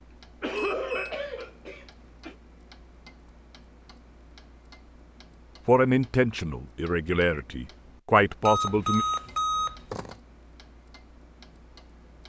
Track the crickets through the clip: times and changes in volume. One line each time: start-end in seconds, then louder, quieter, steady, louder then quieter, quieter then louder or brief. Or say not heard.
not heard.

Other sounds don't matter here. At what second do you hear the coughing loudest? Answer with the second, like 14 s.
1 s.